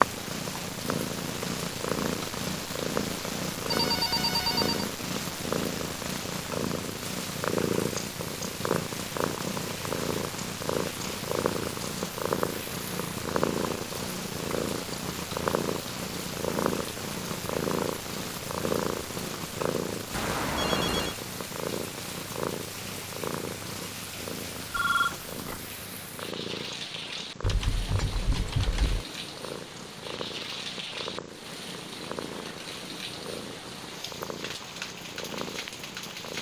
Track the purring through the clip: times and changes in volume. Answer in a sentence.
You can hear the purring from 0.0 to 36.3 s, getting quieter.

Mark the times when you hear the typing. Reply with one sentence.
The typing can be heard from 27.4 to 29.1 s.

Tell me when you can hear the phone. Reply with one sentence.
The phone can be heard from 3.7 to 4.8 s, from 20.1 to 21.2 s and from 24.7 to 25.6 s.